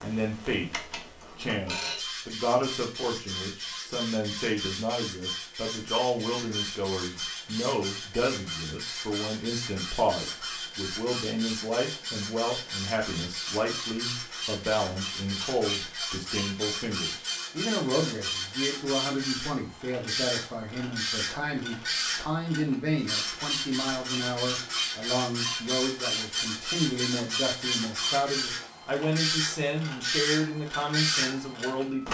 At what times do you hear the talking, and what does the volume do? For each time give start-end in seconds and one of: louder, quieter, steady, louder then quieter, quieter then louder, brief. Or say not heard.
0.0-32.0 steady.